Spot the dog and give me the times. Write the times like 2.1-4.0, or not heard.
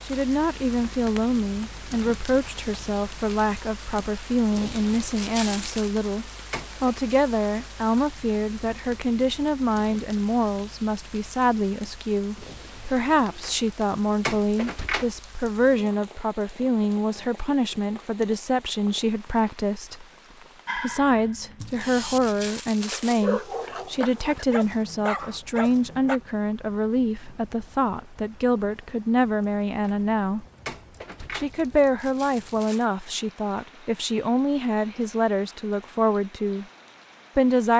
20.6-26.2.